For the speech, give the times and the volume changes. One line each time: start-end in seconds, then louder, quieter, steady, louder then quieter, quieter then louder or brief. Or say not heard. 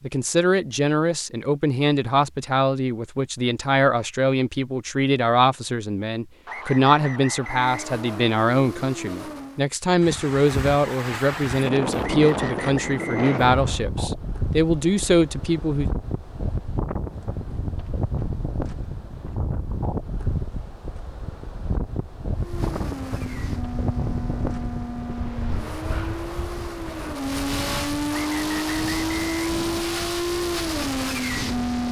0.0-15.9 steady.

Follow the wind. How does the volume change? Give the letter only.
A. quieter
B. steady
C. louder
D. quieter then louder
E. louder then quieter
A.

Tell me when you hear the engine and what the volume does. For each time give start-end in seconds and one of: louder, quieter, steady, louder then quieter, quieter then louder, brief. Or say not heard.
7.4-9.7 brief
22.4-31.8 louder.